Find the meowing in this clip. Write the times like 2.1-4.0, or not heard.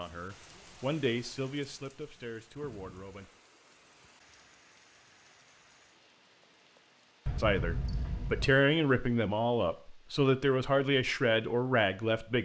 7.2-8.6.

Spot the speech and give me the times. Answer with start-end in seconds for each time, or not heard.
0.0-3.3, 7.4-12.4.